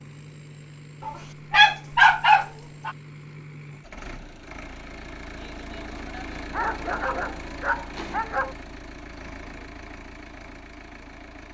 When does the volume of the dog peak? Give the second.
2 s.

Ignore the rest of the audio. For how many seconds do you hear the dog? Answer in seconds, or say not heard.
4 s.